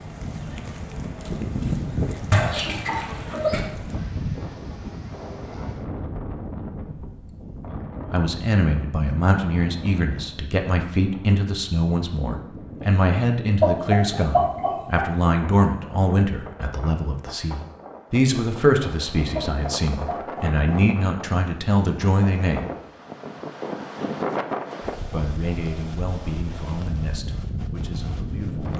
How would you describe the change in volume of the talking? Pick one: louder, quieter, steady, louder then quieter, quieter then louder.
quieter.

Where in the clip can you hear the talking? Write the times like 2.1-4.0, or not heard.
8.1-22.6, 25.1-28.7.